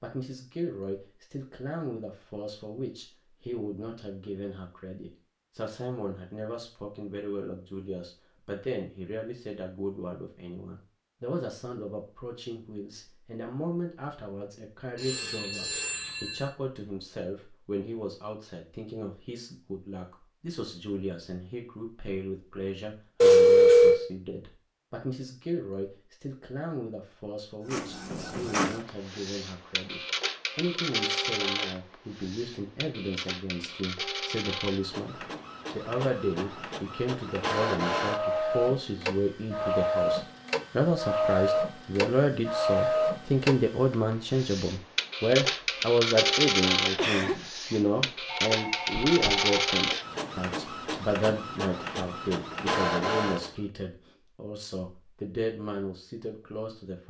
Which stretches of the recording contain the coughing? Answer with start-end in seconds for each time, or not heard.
47.0-47.9.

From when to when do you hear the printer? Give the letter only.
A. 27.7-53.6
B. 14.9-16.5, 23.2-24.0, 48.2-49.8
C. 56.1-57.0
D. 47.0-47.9
A.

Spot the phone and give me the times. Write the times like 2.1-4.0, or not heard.
14.9-16.5, 23.2-24.0, 48.2-49.8.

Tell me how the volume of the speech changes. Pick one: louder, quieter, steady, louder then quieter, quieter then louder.
louder.